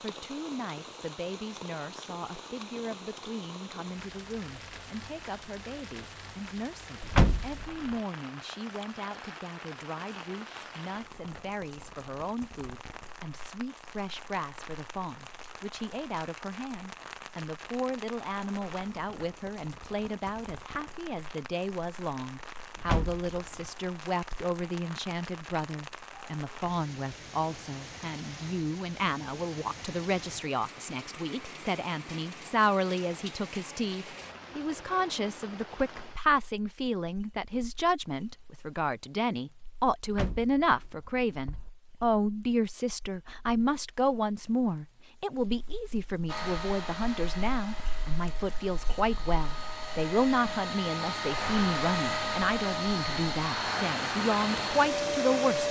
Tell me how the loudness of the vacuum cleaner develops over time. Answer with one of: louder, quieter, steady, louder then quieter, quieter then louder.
louder.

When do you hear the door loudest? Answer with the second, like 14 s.
7 s.